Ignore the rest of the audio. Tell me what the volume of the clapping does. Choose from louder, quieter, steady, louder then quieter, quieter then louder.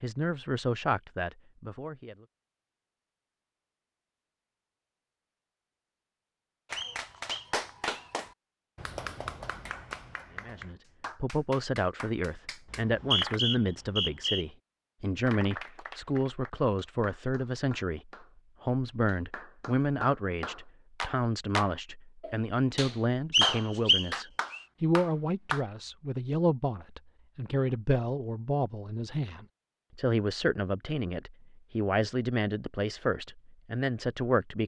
quieter then louder.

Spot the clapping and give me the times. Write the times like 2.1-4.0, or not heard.
6.7-13.4, 15.2-25.6.